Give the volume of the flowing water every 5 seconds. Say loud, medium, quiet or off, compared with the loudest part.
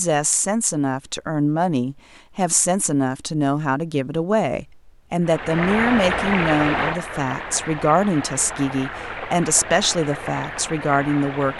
off, loud, medium.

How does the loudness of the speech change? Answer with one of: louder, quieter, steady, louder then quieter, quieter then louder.
steady.